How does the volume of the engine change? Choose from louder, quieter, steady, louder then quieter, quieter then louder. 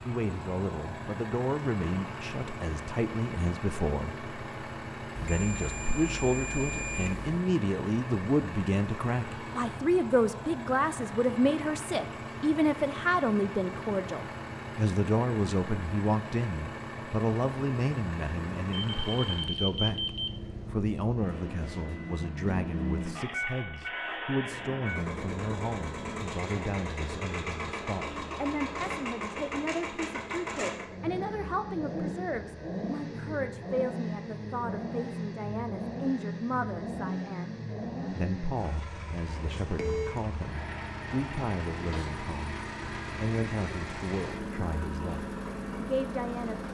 steady.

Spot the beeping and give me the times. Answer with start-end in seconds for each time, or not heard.
5.2-7.3, 18.8-20.7, 39.6-40.2.